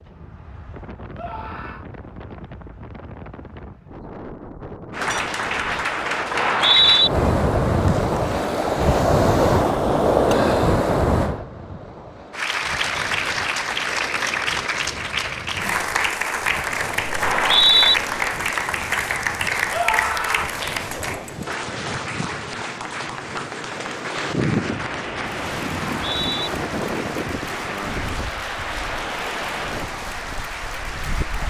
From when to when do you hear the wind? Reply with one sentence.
The wind can be heard from 0.0 to 31.4 s.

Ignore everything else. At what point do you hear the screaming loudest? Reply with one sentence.
The volume of the screaming peaks at 20 seconds.